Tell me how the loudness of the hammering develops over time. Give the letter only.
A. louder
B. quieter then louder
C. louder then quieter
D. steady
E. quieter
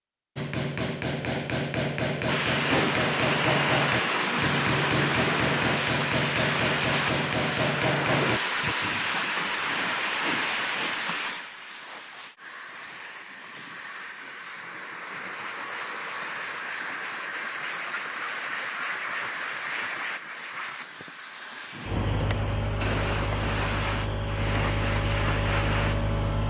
D.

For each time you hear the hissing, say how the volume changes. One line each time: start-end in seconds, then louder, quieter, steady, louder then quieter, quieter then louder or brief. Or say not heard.
2.2-26.4 quieter then louder.